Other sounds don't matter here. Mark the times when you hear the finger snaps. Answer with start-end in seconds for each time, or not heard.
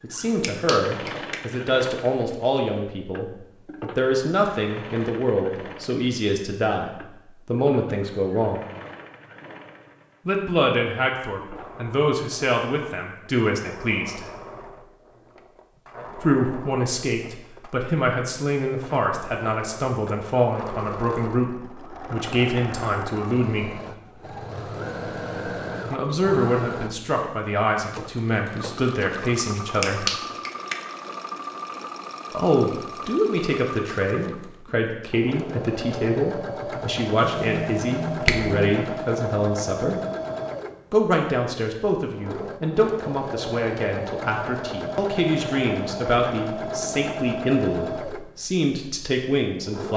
0.4-1.4, 29.8-30.8, 37.2-38.9.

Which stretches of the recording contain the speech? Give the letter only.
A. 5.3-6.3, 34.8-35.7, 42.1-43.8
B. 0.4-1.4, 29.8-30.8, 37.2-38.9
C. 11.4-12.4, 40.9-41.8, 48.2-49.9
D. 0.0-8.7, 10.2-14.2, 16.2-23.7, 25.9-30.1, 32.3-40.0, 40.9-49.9
D.